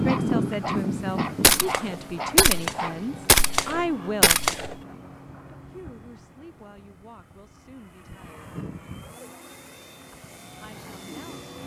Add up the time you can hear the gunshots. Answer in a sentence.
The gunshots can be heard for 3 seconds in total.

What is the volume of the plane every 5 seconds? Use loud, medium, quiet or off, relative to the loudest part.
loud, quiet, medium.